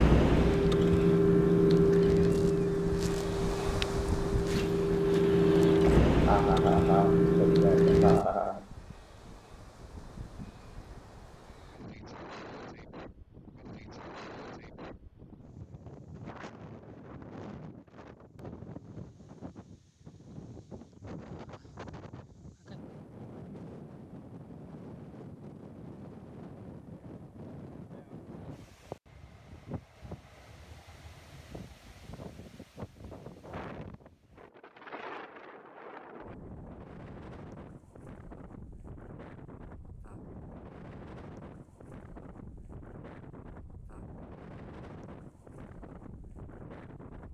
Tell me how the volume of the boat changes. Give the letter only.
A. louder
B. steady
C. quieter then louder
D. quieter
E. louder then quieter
C.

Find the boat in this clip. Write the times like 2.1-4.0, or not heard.
0.0-8.2.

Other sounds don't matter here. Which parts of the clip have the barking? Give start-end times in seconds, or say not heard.
not heard.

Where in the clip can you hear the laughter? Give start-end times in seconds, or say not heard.
6.2-8.7.